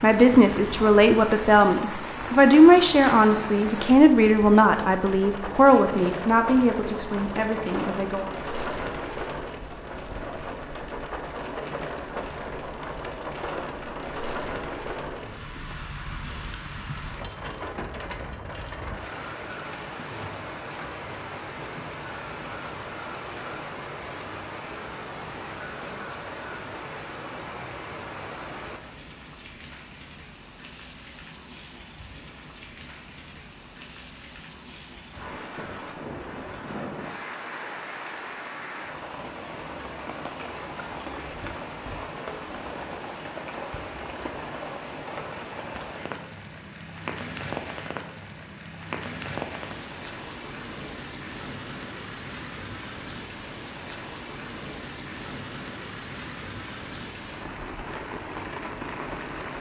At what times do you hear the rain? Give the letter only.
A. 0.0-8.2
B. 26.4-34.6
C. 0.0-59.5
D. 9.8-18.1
C.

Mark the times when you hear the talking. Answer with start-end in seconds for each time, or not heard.
0.0-8.2.